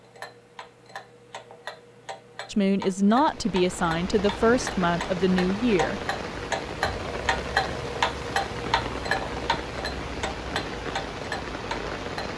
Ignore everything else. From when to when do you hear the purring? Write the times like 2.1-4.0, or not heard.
not heard.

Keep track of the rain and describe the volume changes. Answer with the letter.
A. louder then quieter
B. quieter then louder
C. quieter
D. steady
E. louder
D.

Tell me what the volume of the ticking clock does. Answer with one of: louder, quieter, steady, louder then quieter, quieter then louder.
louder then quieter.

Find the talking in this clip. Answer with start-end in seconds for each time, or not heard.
2.5-6.0.